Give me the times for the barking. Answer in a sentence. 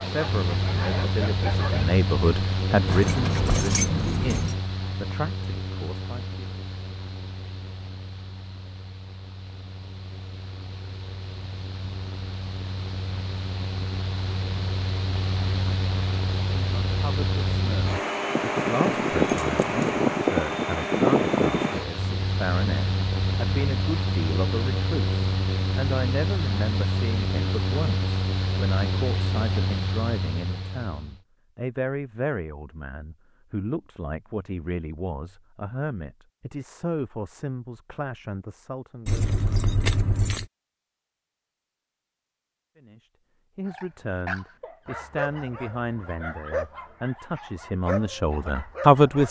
The barking can be heard from 0.0 to 1.9 s and from 43.6 to 49.2 s.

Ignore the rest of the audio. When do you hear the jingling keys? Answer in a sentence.
The jingling keys can be heard from 2.9 to 4.6 s, from 19.2 to 19.9 s and from 39.0 to 40.5 s.